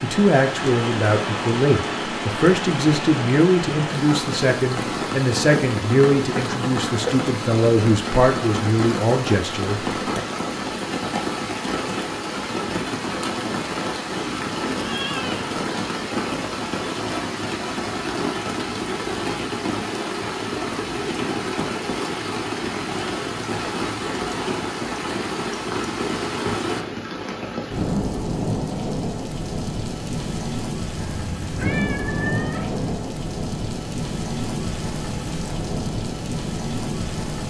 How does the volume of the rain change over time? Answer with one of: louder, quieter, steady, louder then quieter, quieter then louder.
steady.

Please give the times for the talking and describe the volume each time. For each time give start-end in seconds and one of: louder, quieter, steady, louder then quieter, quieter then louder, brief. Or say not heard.
0.0-10.2 steady.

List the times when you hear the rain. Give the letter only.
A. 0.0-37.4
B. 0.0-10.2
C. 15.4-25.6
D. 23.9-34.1
A.